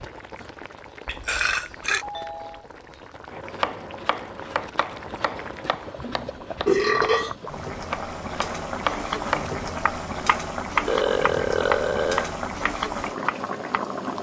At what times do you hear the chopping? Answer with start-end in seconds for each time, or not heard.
3.3-13.8.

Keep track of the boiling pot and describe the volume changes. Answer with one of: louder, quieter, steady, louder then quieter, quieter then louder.
louder.